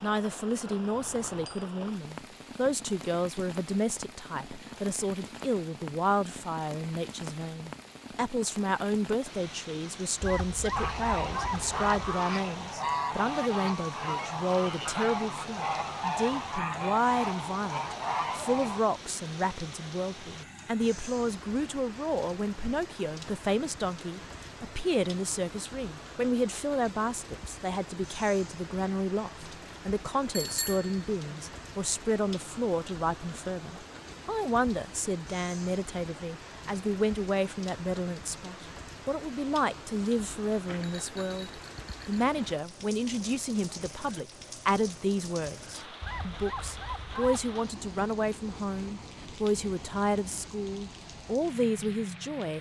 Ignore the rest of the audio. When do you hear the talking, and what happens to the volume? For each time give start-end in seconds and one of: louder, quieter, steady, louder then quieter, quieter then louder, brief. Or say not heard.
0.0-52.5 steady.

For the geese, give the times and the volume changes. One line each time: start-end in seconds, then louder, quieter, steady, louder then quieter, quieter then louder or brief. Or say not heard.
10.8-18.8 steady.